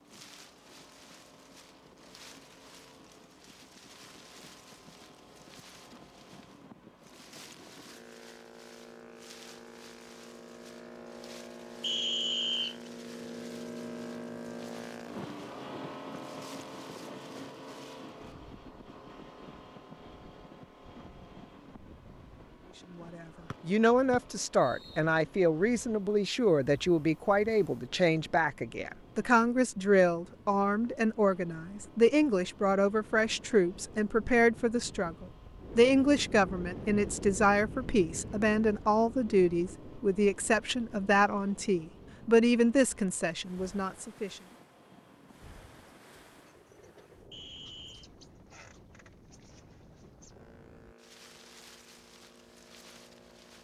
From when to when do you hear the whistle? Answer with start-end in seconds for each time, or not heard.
11.8-12.8, 23.5-25.0, 47.3-48.1.